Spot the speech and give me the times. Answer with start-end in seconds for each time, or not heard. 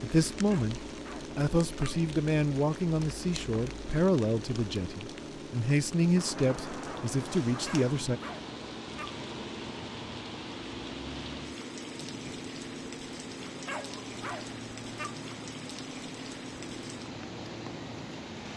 0.0-8.2.